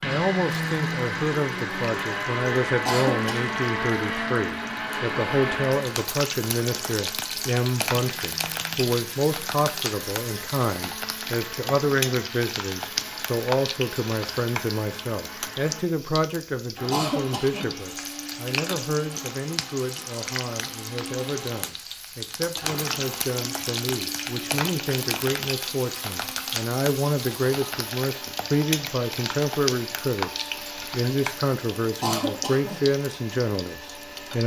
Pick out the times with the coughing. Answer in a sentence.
The coughing can be heard from 2.9 to 3.5 s, from 16.9 to 17.7 s and from 32.0 to 32.8 s.